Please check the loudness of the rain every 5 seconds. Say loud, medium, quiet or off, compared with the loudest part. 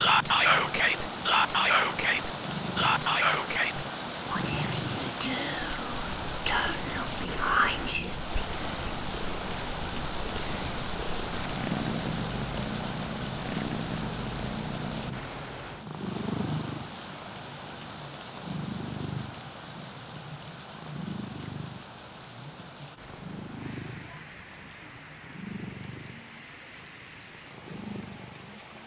loud, loud, loud, medium, medium, quiet.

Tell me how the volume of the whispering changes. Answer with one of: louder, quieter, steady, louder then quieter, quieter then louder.
quieter then louder.